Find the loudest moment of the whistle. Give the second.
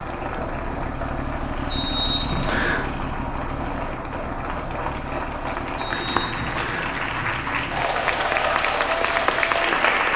2 s.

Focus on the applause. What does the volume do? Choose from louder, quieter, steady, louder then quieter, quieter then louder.
louder.